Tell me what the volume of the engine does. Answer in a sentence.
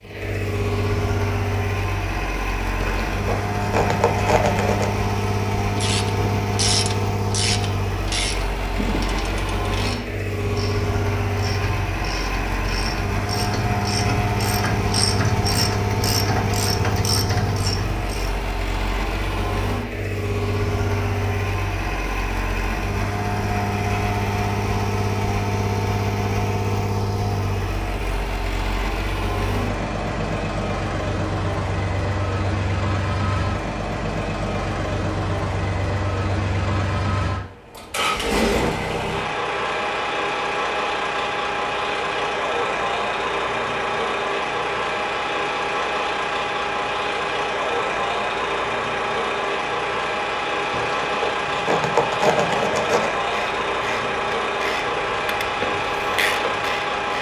The loudness of the engine stays about the same.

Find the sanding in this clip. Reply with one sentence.
The sanding can be heard from 2.8 to 5.0 s and from 50.7 to 53.1 s.